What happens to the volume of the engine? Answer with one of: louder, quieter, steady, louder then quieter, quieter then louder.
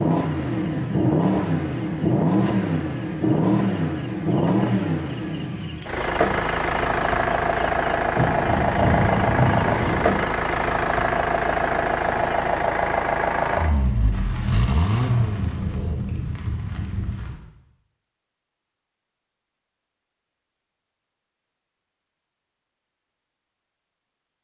steady.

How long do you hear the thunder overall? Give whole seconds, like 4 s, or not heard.
5 s.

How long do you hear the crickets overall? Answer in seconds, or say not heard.
13 s.